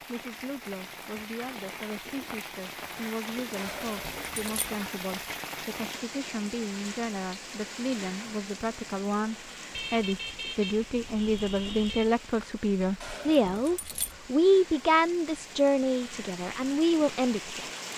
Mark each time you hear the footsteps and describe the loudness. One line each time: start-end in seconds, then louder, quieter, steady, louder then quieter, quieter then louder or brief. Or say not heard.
not heard.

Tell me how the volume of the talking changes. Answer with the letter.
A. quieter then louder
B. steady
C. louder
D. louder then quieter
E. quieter
C.